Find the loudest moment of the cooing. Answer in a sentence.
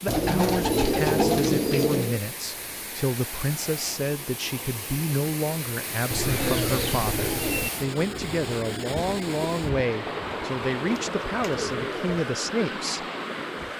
The loudest moment of the cooing is at 1 second.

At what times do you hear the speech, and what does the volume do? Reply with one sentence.
You can hear the speech from 0.0 to 13.1 s, at a steady volume.